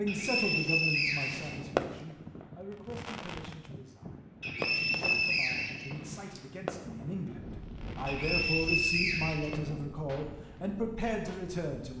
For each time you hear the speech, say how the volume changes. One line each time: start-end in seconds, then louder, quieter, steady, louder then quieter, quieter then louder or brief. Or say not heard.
0.0-11.9 quieter then louder.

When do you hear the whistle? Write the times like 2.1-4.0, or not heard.
0.1-1.6, 4.4-6.4, 8.1-9.6.